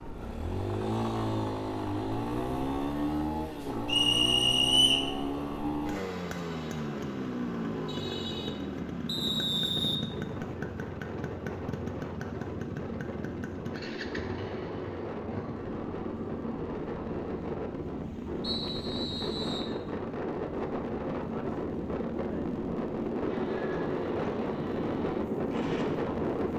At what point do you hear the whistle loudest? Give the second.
5 s.